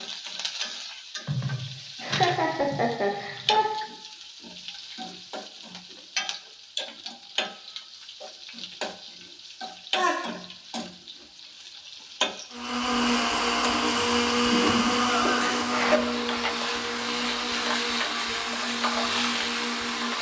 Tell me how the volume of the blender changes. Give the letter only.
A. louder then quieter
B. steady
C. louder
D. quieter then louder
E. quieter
E.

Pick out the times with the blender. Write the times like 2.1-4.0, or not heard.
12.5-20.1.